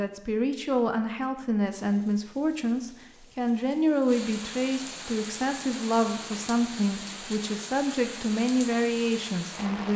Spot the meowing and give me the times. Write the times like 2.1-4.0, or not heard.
not heard.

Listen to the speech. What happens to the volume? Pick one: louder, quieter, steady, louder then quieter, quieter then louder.
steady.